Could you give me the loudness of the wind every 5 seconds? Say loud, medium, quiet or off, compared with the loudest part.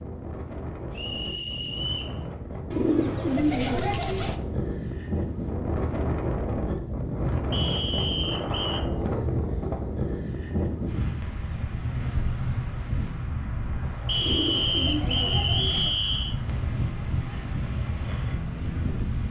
medium, loud, loud, loud.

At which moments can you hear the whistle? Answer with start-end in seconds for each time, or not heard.
0.9-2.1, 7.5-8.8, 14.1-16.4.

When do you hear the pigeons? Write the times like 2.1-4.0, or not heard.
2.7-4.4, 14.2-16.1.